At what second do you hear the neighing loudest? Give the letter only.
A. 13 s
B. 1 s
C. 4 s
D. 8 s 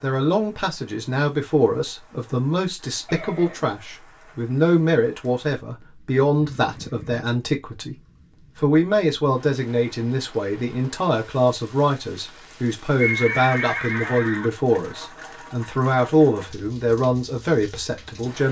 A.